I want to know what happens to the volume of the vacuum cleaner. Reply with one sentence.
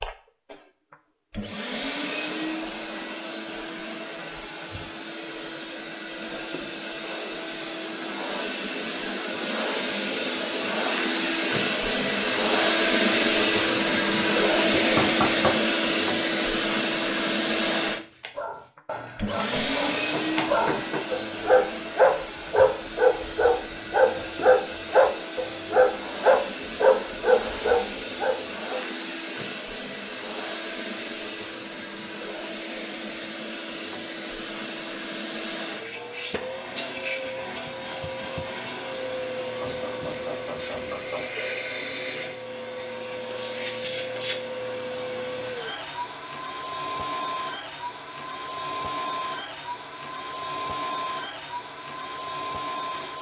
The loudness of the vacuum cleaner goes up, then down.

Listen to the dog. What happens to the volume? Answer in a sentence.
The loudness of the dog goes up.